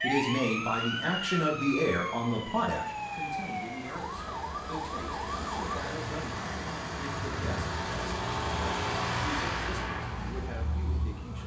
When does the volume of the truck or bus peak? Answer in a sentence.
The loudest moment of the truck or bus is at 9 seconds.